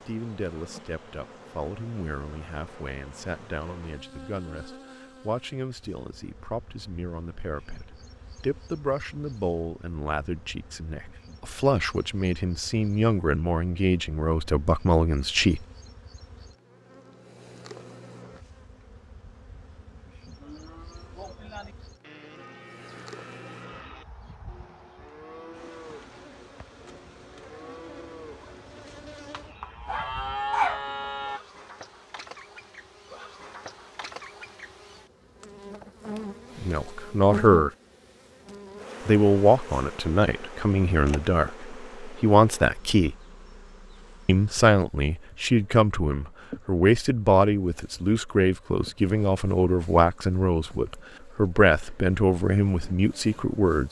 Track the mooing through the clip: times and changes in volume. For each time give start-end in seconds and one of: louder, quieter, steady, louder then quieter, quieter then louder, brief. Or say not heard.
20.4-31.4 louder.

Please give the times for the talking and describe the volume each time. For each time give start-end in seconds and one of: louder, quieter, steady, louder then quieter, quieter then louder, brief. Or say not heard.
0.1-15.6 louder
36.5-37.7 brief
39.0-43.1 quieter then louder
44.2-53.8 steady.